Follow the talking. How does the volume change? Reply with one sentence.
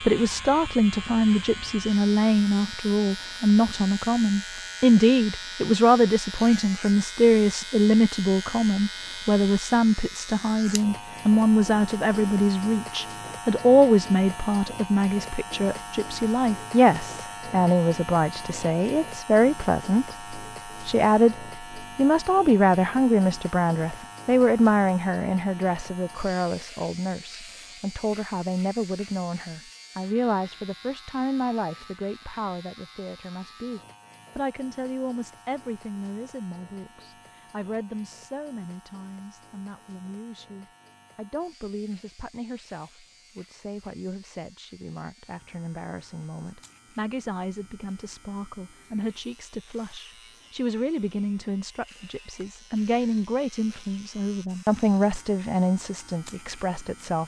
The loudness of the talking goes down, then up.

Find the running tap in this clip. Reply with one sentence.
The running tap can't be heard in this clip.